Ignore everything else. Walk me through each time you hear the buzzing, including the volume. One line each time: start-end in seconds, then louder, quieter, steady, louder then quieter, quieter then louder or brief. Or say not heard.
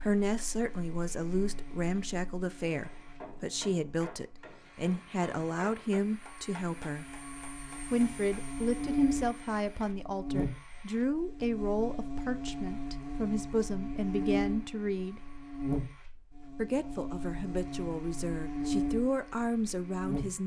0.0-20.4 louder.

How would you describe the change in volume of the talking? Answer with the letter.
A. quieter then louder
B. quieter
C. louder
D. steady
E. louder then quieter
D.